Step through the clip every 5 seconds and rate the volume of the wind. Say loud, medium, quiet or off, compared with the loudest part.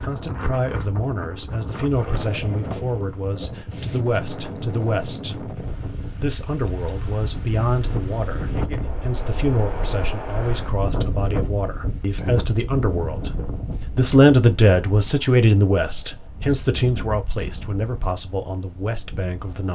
loud, loud, loud, medium.